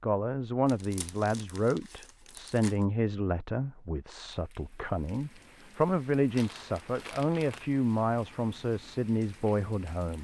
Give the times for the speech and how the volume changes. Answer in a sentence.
You can hear the speech from 0.0 to 10.1 s, at a steady volume.